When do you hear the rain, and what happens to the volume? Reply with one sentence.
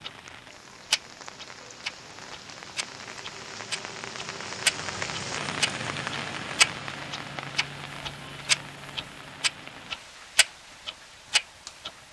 The rain can be heard from 0.0 to 12.0 s, getting louder then quieter.